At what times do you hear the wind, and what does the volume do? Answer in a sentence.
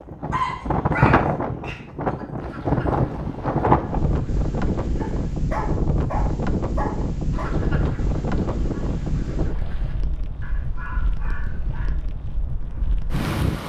You can hear the wind from 0.0 to 13.6 s, getting quieter.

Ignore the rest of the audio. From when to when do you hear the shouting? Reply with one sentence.
The shouting can't be heard in this clip.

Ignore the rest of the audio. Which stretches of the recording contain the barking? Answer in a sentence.
The barking can be heard from 0.3 to 2.2 s, from 5.0 to 7.5 s and from 10.4 to 11.9 s.